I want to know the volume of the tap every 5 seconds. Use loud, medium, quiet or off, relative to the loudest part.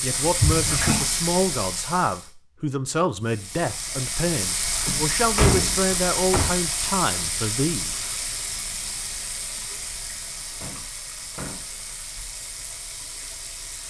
loud, loud, medium.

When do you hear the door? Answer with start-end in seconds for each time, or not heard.
0.4-1.1, 4.8-6.5, 10.5-11.7.